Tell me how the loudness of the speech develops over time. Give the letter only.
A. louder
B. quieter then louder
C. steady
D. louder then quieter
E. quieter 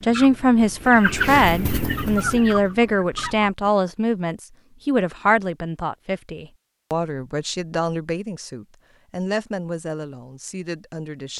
E.